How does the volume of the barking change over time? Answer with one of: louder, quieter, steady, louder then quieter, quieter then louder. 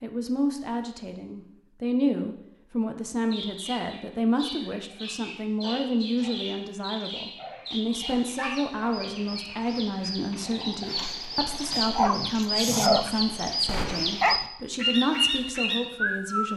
louder.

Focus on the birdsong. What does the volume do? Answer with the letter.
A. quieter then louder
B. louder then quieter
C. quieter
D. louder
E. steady
D.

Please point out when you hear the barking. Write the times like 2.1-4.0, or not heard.
5.6-14.4.